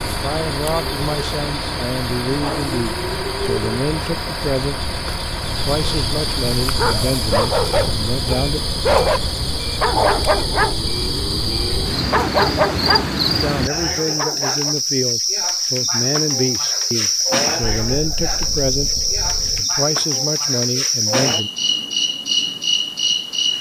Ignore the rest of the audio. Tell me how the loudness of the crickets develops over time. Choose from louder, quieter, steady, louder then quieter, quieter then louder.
louder.